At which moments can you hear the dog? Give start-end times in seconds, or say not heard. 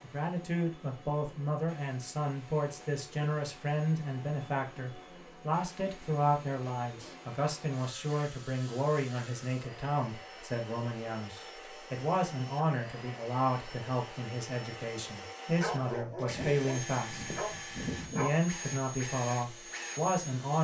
15.6-18.5.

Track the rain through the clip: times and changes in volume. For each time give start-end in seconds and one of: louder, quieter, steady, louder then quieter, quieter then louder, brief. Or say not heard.
not heard.